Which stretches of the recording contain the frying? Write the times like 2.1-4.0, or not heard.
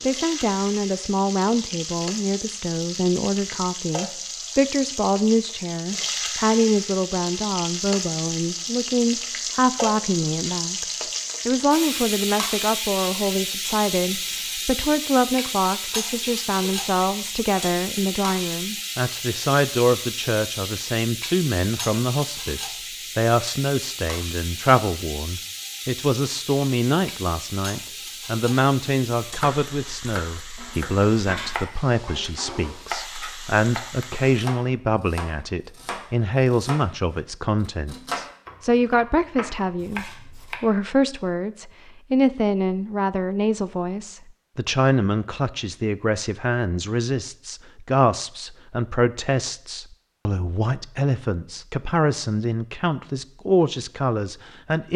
0.0-34.5.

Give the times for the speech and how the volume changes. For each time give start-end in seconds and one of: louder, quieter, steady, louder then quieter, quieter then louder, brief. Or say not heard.
0.0-54.9 steady.